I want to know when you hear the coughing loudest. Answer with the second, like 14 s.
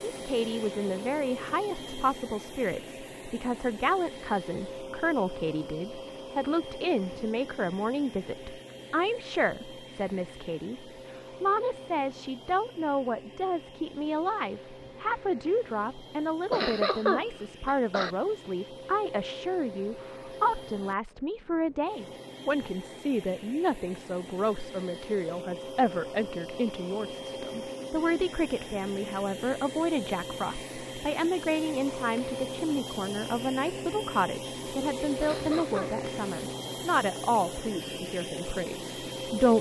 17 s.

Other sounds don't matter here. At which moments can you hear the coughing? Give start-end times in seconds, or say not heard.
16.5-18.1, 35.2-36.0.